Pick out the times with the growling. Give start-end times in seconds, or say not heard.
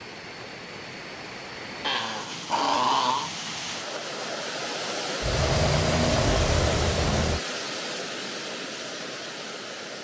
1.8-3.3, 5.2-7.4.